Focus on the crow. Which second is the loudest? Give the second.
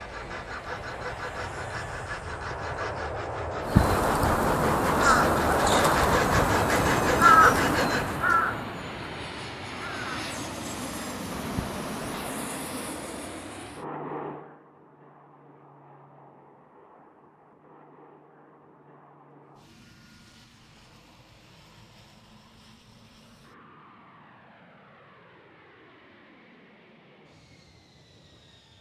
7 s.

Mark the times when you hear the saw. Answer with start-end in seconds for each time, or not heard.
0.0-8.2.